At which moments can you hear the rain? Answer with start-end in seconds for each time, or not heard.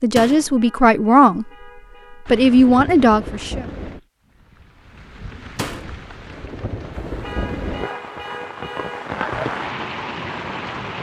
2.2-10.9.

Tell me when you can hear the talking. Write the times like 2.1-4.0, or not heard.
0.0-1.5, 2.2-3.6.